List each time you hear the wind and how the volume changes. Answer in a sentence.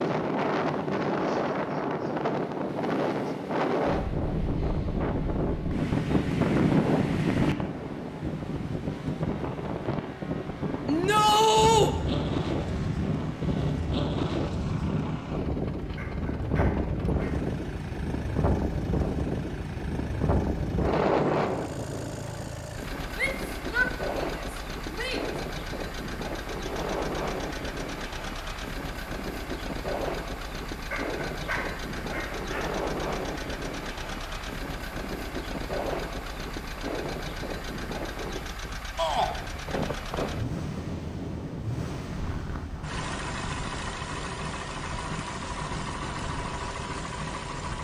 You can hear the wind from 0.0 to 47.8 s, getting quieter.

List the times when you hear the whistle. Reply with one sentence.
You can't hear the whistle here.